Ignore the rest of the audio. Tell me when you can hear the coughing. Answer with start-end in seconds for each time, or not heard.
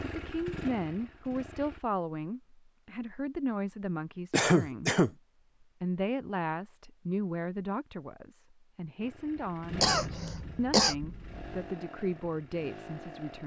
4.3-5.1, 9.8-10.9.